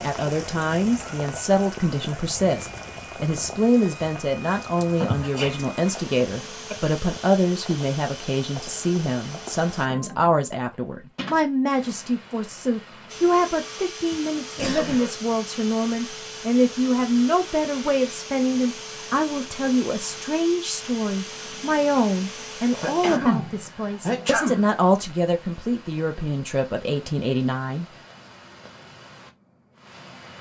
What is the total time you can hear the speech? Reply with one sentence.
The speech can be heard for 28 seconds in total.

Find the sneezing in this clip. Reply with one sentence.
You can hear the sneezing from 4.8 to 6.8 s, from 14.1 to 15.2 s and from 22.6 to 24.8 s.